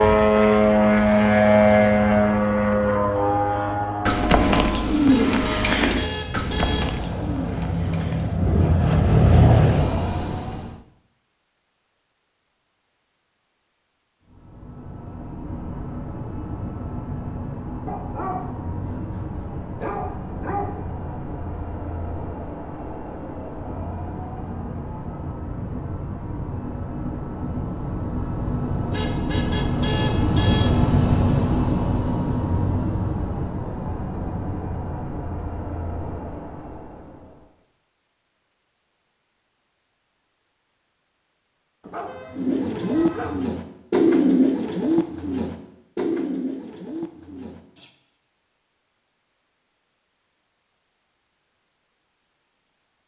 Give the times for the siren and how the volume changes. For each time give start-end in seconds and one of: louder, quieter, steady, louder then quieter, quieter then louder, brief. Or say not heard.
not heard.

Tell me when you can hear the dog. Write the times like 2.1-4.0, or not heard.
17.9-20.8, 41.8-43.4.